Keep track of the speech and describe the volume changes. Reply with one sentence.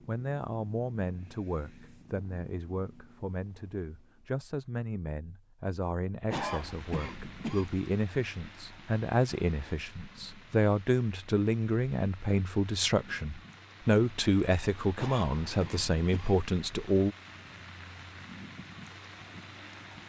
The loudness of the speech goes up.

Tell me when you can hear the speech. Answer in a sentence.
The speech can be heard from 0.1 to 17.1 s.